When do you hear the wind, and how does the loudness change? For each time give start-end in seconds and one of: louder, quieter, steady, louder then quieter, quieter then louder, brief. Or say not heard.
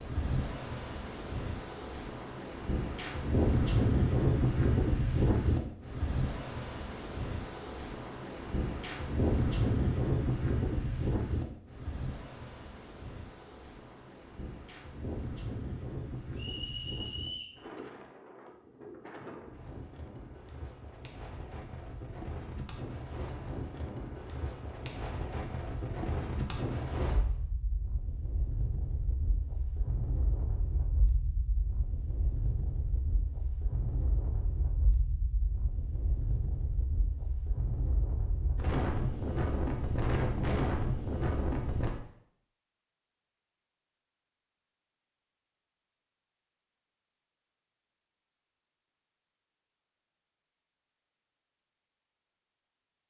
0.0-41.9 quieter then louder.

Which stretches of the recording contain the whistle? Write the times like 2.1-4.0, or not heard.
16.4-17.6.